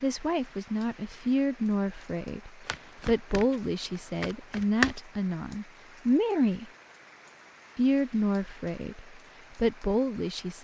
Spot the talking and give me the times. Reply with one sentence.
The talking can be heard from 0.0 to 6.7 s and from 7.8 to 10.5 s.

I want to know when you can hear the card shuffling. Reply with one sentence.
You can hear the card shuffling from 2.6 to 5.0 s.